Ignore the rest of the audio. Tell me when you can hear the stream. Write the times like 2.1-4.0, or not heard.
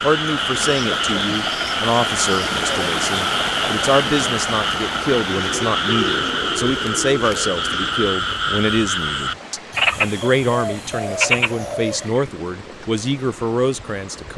0.0-14.3.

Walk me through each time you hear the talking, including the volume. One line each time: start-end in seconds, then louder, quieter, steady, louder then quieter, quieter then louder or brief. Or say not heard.
0.0-14.3 steady.